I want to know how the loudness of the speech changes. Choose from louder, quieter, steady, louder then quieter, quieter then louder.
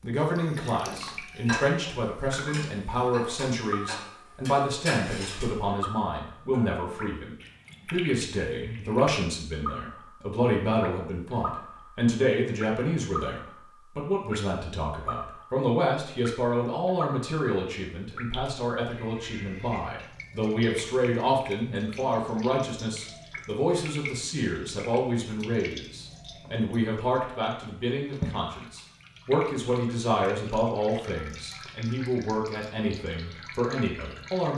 steady.